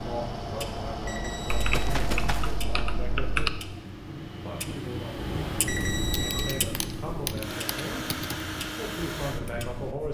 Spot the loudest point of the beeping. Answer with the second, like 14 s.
6 s.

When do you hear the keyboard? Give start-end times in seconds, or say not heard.
1.5-3.5, 6.1-8.3.